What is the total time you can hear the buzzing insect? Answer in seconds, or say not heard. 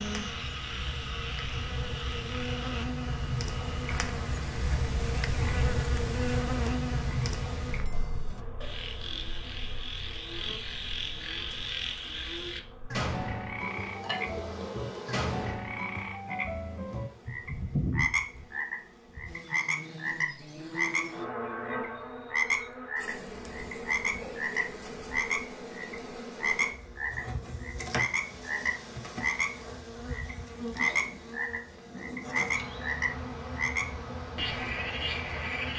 36 s.